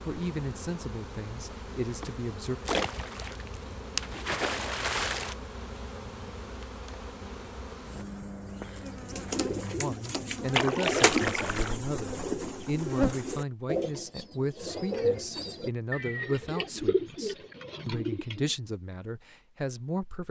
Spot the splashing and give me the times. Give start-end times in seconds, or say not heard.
2.6-5.3, 10.5-11.8.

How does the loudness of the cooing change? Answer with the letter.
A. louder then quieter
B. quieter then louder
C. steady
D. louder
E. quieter
C.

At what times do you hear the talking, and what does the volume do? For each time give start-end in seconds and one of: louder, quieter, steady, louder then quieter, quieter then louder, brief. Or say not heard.
0.0-2.6 brief
9.4-20.2 steady.